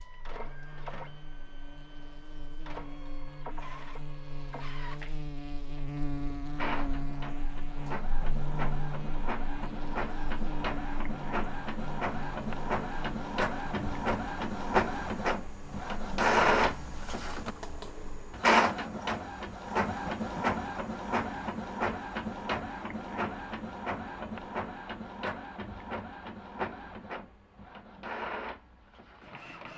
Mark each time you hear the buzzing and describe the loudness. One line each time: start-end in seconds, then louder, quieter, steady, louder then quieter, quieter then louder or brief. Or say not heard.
0.0-18.4 louder then quieter.